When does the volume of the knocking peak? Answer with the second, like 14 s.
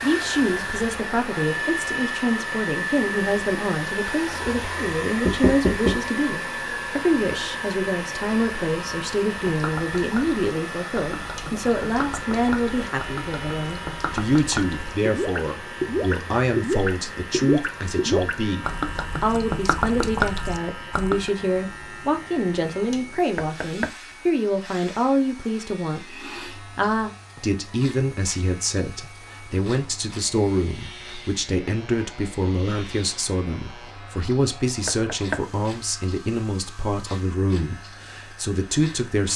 6 s.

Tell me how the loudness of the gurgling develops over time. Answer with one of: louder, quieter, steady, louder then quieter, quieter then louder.
louder.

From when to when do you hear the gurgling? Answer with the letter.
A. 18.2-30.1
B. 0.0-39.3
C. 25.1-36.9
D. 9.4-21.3
D.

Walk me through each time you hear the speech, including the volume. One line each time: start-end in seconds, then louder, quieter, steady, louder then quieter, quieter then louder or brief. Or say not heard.
0.0-39.3 steady.